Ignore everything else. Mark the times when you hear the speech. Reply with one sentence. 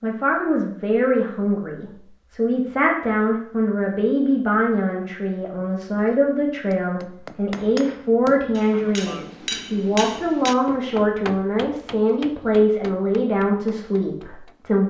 The speech can be heard from 0.0 to 14.8 s.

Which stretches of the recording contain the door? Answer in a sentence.
You can't hear the door here.